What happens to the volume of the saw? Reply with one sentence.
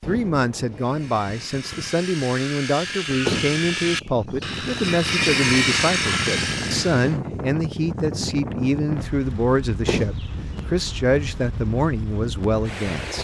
The loudness of the saw goes up.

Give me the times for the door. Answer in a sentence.
The door can be heard from 3.2 to 4.0 s and from 9.8 to 10.3 s.